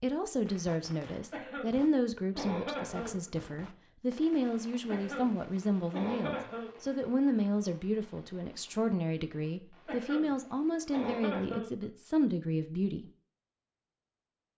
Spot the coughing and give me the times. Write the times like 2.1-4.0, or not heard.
1.3-3.3, 4.8-6.9, 9.8-11.8.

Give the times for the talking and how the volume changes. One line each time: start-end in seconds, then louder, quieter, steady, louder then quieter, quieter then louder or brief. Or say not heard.
0.0-13.1 steady.